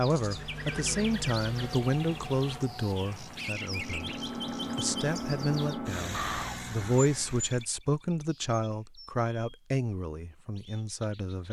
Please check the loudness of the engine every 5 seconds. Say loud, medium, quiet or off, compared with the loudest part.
loud, loud, off.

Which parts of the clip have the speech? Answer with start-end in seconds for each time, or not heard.
0.0-4.2, 4.8-11.4.